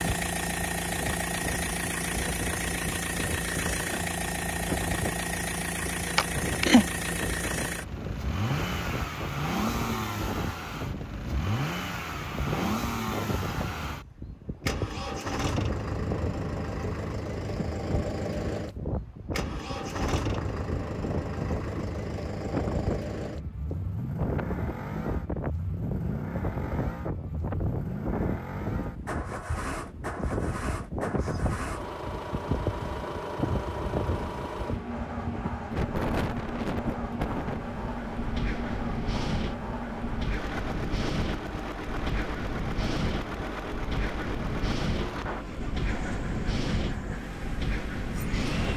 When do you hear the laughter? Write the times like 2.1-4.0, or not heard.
6.2-6.8.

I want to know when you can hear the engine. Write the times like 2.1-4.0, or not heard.
0.0-48.7.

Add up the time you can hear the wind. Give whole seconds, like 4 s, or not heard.
49 s.